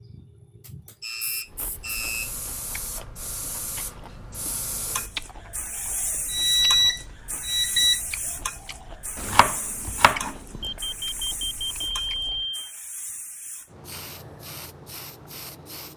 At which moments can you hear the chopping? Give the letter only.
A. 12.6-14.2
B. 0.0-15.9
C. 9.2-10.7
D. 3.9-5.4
C.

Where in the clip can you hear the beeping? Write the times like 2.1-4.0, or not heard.
0.7-2.3, 6.3-8.0, 10.6-12.8.